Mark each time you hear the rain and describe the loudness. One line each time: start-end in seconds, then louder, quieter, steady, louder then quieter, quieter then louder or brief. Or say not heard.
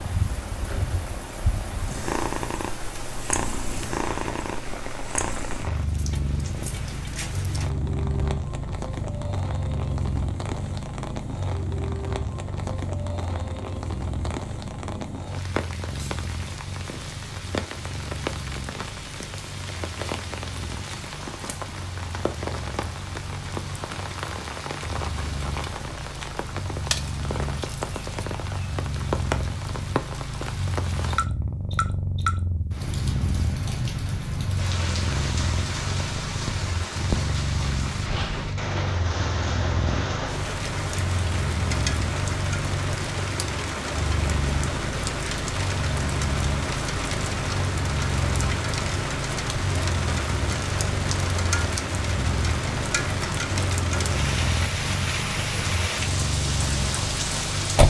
0.0-57.8 louder.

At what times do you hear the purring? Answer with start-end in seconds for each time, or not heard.
0.0-57.8.